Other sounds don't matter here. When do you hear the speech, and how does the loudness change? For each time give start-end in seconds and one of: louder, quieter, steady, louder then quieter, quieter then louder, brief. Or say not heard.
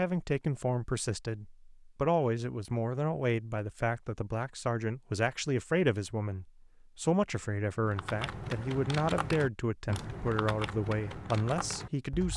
0.0-12.3 steady.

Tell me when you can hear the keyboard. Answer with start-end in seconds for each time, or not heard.
7.8-12.3.